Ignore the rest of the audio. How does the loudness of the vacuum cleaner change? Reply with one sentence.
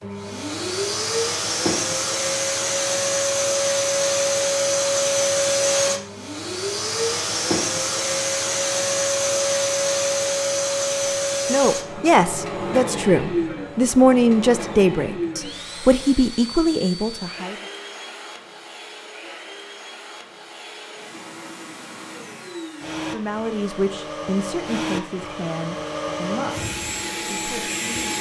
The volume of the vacuum cleaner goes down, then up.